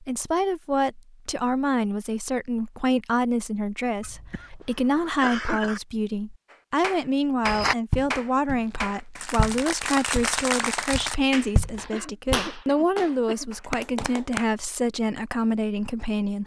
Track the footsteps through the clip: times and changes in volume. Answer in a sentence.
You can hear the footsteps from 7.5 to 12.5 s, getting quieter then louder.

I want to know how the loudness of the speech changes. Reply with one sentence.
The volume of the speech stays about the same.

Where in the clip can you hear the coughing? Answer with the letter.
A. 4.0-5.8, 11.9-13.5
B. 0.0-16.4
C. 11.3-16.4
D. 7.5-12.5
A.